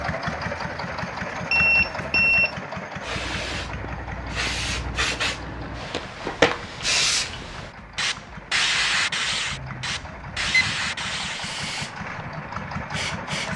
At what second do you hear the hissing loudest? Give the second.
7 s.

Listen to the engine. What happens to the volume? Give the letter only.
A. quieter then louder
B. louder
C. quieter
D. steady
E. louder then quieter
A.